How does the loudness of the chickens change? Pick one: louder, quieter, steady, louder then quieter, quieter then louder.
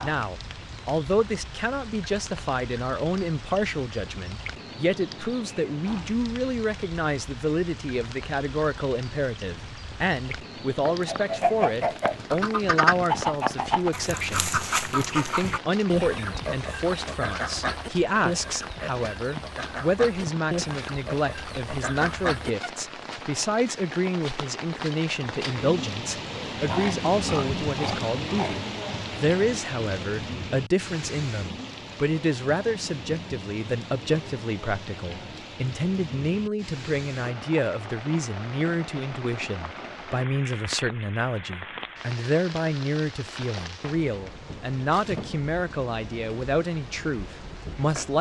quieter.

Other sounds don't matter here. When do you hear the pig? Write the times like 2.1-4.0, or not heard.
26.6-28.6.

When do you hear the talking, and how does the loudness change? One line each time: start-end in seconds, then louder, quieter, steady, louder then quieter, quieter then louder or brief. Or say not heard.
0.0-48.1 steady.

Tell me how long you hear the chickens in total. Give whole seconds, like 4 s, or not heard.
12 s.